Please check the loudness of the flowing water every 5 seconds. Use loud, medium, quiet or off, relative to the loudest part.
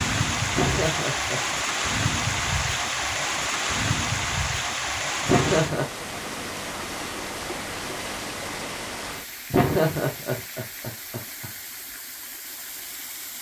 loud, medium, quiet.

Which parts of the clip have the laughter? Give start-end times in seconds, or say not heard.
0.5-1.4, 5.2-5.8, 9.5-11.5.